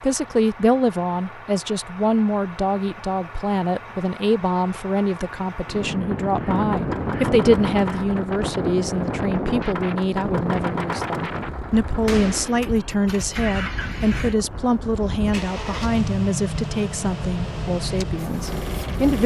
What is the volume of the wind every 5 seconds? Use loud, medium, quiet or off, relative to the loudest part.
off, loud, medium, medium.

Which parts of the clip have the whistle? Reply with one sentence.
The whistle can't be heard in this clip.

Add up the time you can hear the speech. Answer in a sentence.
The speech can be heard for 19 seconds in total.